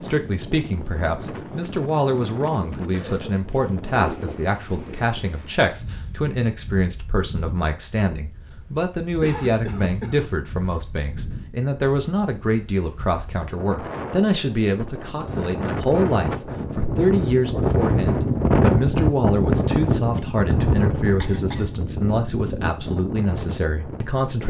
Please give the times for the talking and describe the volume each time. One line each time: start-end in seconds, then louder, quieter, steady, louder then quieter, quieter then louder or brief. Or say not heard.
0.0-24.4 steady.